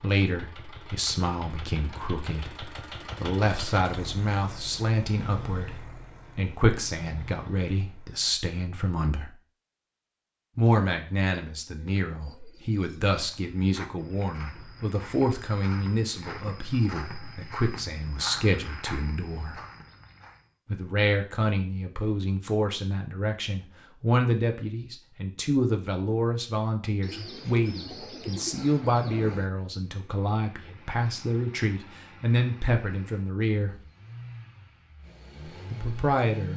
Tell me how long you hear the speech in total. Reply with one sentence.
The speech can be heard for 32 seconds in total.